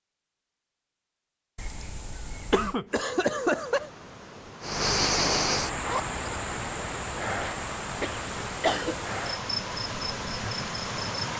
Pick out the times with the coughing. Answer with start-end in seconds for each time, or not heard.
2.5-3.9, 8.0-9.2.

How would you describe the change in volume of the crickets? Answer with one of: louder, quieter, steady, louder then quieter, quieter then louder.
quieter.